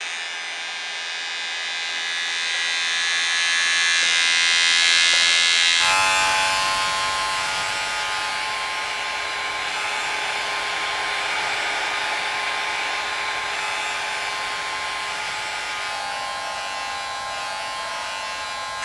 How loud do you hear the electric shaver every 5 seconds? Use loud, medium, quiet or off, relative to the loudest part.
loud, loud, medium, medium.